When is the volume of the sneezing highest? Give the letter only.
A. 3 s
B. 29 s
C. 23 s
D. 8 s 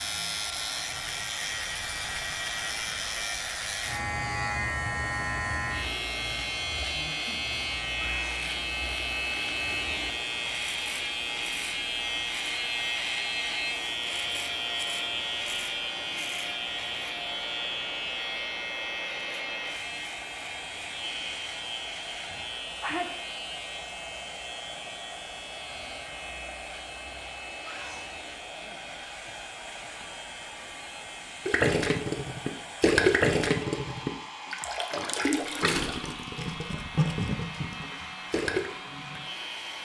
C.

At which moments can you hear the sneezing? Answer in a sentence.
You can hear the sneezing from 6.9 to 7.5 s, from 22.3 to 23.2 s and from 28.5 to 29.9 s.